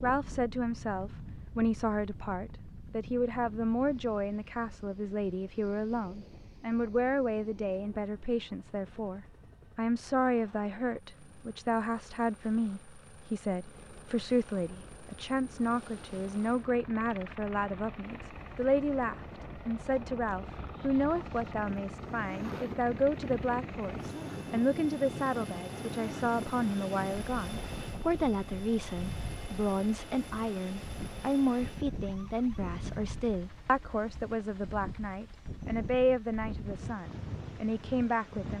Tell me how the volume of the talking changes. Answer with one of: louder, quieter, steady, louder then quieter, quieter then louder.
steady.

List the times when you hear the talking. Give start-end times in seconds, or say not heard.
0.0-38.5.